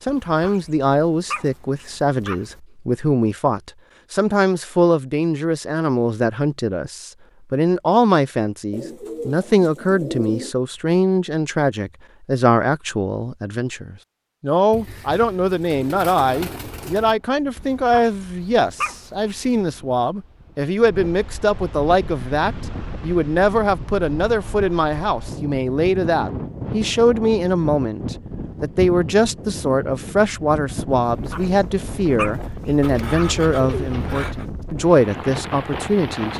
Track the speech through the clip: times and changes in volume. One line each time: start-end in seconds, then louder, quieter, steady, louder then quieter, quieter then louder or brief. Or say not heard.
0.0-36.3 steady.